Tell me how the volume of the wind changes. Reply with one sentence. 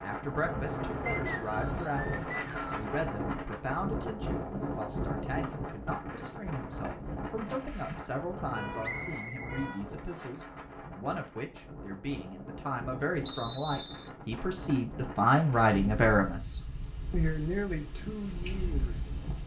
The loudness of the wind goes down.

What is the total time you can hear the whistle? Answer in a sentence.
You can hear the whistle for 4 seconds altogether.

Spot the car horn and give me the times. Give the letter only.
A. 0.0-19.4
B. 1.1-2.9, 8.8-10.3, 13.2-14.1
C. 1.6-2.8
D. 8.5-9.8
D.